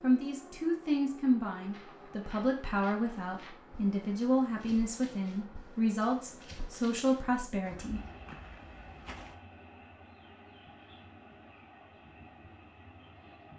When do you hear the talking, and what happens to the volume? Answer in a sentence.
The talking can be heard from 0.0 to 8.0 s, at a steady volume.